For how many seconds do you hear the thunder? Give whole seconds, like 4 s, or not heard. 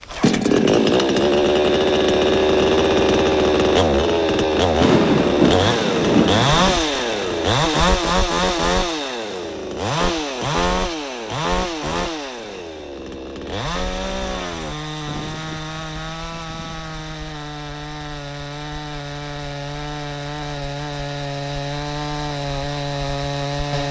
2 s.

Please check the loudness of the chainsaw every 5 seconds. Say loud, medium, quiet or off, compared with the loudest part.
loud, loud, medium, quiet, medium.